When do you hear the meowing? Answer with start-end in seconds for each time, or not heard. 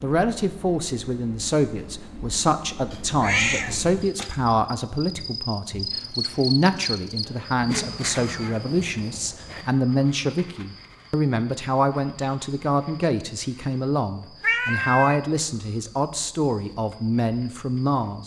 2.9-4.3, 7.6-9.7, 14.4-15.2.